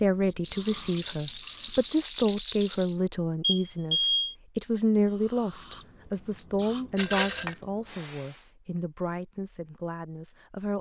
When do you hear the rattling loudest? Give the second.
7 s.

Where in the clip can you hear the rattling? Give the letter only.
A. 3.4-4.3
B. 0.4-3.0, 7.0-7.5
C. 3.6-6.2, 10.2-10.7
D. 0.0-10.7
B.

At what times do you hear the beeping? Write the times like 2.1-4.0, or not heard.
3.4-4.3.